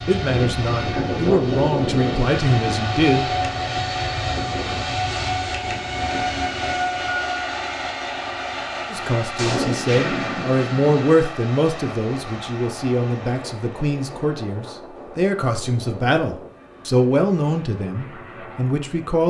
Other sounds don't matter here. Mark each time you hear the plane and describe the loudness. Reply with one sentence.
You can hear the plane from 0.0 to 19.2 s, getting quieter.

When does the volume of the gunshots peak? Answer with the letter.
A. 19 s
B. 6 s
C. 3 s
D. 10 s
D.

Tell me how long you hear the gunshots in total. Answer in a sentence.
You can hear the gunshots for 2 seconds altogether.